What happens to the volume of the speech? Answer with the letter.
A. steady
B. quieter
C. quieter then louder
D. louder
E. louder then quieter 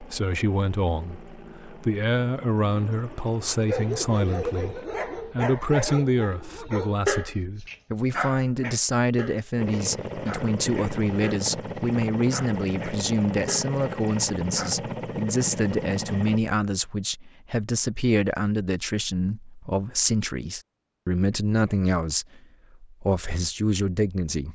A.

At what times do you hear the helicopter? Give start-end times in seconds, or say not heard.
0.0-4.9, 9.6-16.4.